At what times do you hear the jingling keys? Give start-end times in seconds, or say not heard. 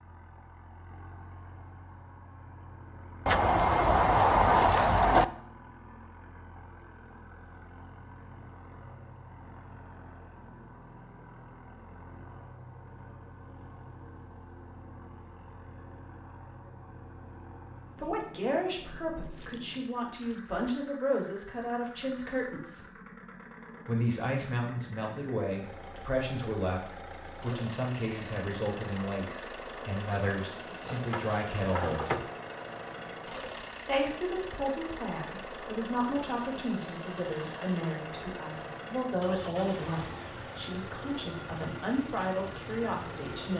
3.2-5.2, 19.2-20.7, 30.8-32.3.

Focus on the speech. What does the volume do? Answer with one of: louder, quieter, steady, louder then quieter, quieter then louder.
steady.